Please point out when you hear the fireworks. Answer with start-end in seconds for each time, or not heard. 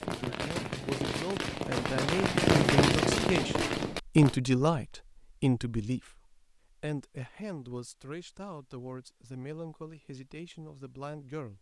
0.0-4.4.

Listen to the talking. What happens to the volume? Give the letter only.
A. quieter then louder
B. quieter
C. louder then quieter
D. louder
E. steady
C.